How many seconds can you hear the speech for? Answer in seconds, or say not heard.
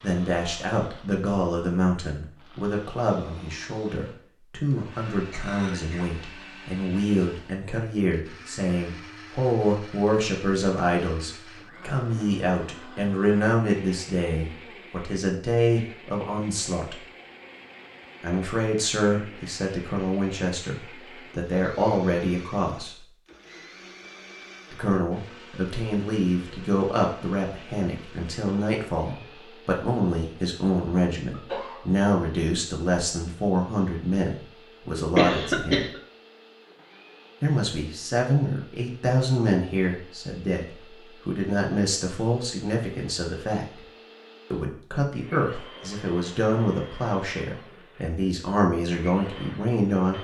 45 s.